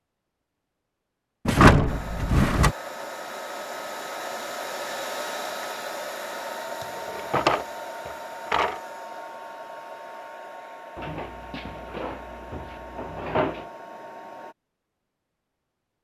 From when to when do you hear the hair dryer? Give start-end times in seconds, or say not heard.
1.9-14.6.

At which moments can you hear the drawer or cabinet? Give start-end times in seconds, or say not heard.
1.4-2.8, 7.2-8.8, 10.9-13.7.